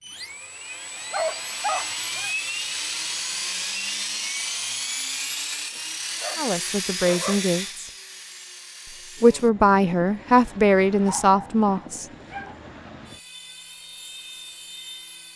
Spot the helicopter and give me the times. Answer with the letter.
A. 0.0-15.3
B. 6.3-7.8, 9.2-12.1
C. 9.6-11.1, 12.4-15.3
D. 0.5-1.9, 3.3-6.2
A.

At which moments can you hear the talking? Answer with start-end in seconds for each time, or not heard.
6.3-7.8, 9.2-12.1.